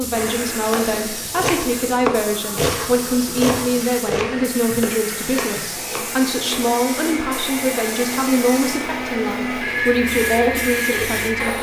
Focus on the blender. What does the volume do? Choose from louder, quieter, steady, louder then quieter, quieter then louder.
louder.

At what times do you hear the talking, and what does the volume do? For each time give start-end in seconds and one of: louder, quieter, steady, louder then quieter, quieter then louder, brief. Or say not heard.
0.0-11.5 steady.